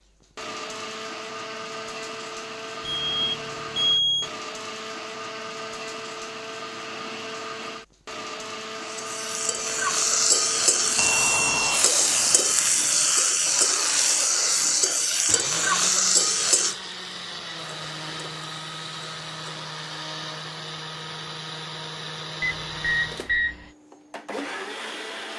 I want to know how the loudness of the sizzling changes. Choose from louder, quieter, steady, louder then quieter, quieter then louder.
quieter.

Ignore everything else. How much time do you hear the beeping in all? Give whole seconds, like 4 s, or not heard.
4 s.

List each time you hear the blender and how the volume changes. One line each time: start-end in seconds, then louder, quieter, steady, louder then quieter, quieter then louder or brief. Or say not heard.
0.1-25.3 steady.